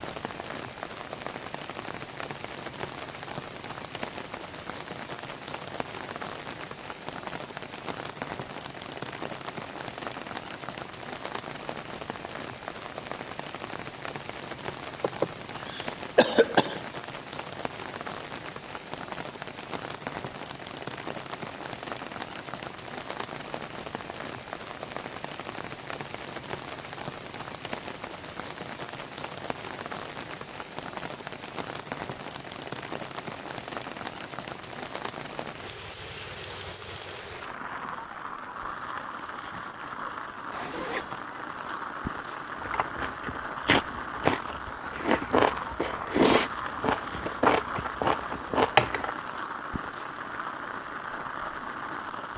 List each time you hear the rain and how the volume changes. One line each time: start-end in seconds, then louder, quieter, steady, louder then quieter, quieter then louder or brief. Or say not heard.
0.0-52.3 steady.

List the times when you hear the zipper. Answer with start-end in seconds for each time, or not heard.
40.5-41.3.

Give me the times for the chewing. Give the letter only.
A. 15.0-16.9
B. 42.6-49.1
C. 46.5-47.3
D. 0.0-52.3
B.